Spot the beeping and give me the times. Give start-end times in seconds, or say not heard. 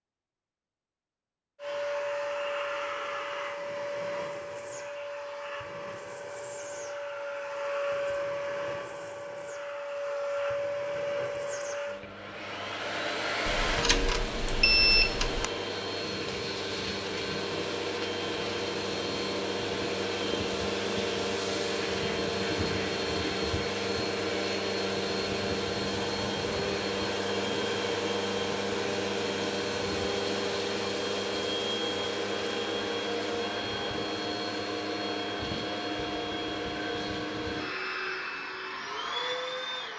13.4-15.4.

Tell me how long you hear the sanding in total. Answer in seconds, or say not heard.
not heard.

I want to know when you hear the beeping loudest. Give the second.
15 s.